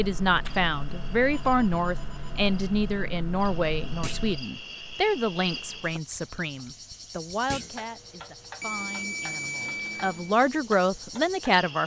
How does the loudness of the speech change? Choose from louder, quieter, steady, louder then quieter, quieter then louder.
quieter then louder.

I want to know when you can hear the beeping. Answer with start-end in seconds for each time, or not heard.
1.3-2.5, 8.6-10.3.